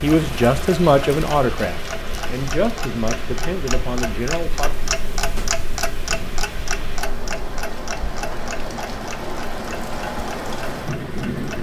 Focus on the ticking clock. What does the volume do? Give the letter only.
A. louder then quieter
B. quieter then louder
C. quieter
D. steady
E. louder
A.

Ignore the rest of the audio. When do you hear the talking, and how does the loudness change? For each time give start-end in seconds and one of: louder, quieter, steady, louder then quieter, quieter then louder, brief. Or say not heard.
0.0-4.7 quieter.